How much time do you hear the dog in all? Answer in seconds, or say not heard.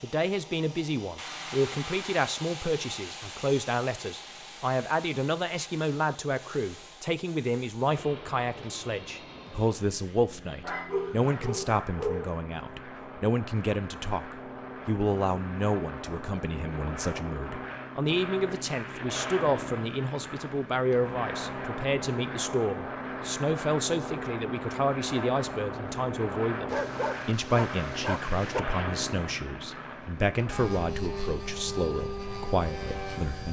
4 s.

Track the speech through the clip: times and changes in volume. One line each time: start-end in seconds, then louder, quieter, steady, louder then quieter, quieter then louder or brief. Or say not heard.
0.0-33.4 steady.